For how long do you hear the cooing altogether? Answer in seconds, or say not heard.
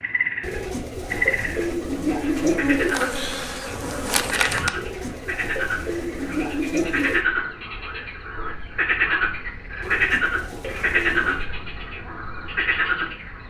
7 s.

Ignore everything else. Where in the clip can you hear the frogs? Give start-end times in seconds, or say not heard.
0.0-13.4.